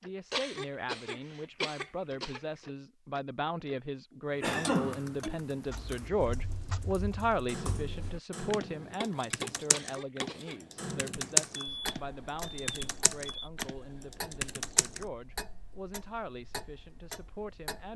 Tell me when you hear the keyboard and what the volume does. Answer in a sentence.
The keyboard can be heard from 4.4 to 15.1 s, getting louder then quieter.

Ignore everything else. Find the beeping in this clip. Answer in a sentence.
You can hear the beeping from 11.2 to 13.5 s.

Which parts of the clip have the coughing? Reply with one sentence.
You can hear the coughing from 0.3 to 2.6 s and from 9.7 to 10.6 s.